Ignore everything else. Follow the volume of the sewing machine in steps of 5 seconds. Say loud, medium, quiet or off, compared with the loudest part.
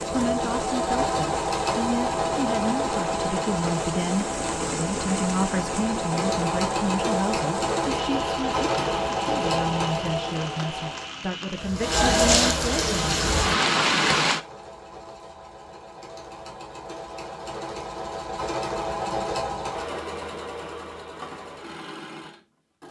loud, loud, medium, medium, medium.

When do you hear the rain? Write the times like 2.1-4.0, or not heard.
0.0-14.4.